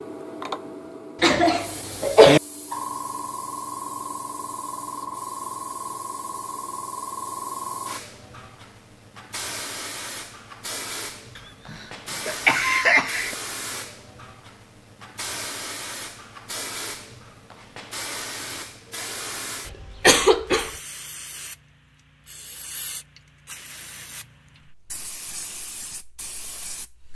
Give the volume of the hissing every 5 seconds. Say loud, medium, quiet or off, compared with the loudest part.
loud, loud, loud, loud, medium, medium.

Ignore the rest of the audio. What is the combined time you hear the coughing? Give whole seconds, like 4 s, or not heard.
4 s.